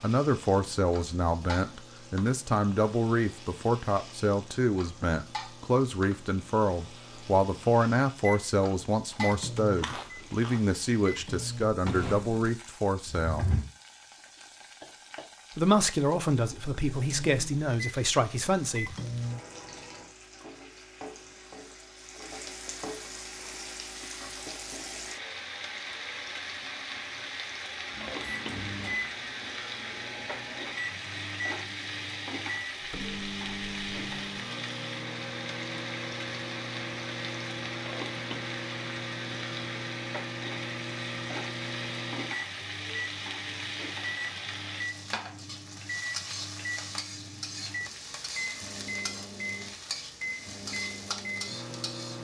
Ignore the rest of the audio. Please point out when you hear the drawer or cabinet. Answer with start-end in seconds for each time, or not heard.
13.1-13.7.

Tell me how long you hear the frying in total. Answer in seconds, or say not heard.
52 s.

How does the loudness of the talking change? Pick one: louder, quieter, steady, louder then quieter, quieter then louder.
steady.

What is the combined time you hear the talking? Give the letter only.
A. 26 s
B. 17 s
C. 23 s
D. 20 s
B.